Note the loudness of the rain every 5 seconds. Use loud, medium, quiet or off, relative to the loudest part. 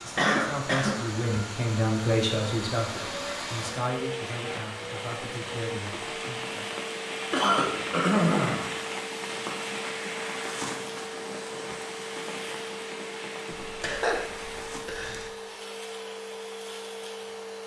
medium, loud, loud, off.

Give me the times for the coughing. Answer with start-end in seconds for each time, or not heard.
0.1-1.2, 7.3-8.8, 13.6-15.3.